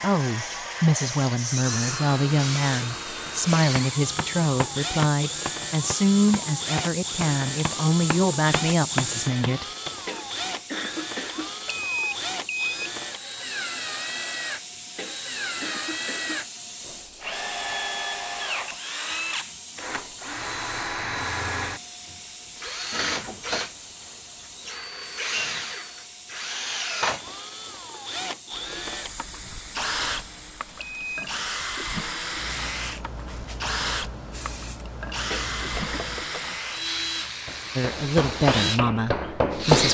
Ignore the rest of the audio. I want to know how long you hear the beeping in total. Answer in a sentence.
You can hear the beeping for 2 seconds altogether.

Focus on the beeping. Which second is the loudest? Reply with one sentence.
The volume of the beeping peaks at 12 seconds.